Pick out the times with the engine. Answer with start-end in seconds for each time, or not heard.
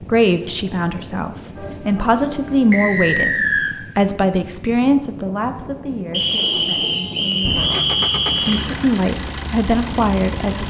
7.4-10.6.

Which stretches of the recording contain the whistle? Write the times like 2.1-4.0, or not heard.
2.7-3.8, 6.1-8.7.